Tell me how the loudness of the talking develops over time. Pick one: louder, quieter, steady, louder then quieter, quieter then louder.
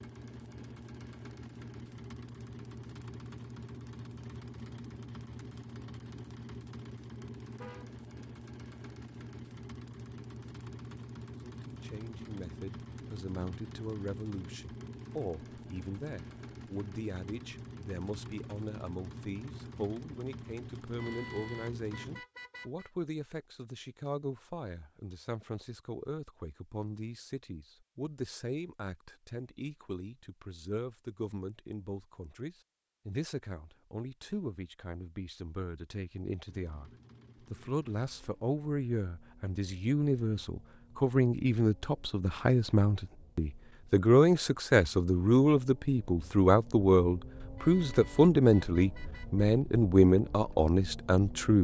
louder.